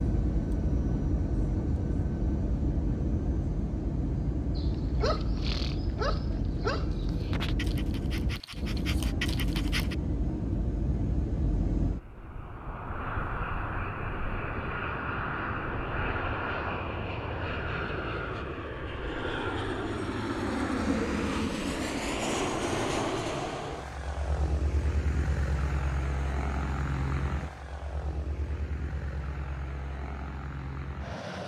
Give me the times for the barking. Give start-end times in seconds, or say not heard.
4.5-9.9.